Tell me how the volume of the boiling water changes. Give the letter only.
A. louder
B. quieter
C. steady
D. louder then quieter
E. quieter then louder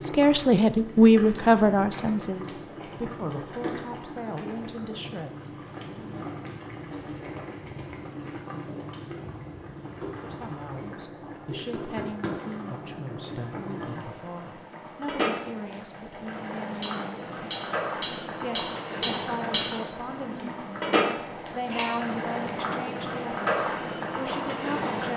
A.